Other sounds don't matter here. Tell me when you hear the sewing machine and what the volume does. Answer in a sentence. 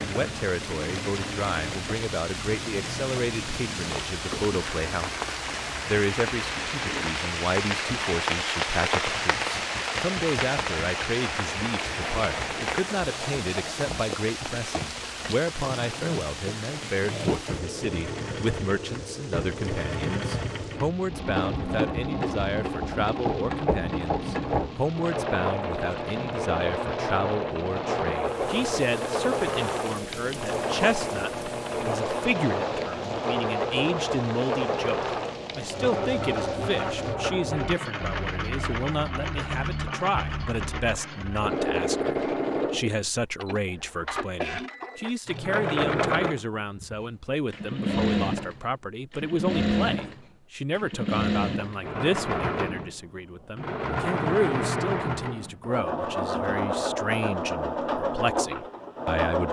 You can hear the sewing machine from 0.0 to 59.4 s, getting louder.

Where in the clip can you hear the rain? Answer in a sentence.
The rain can be heard from 0.0 to 37.2 s.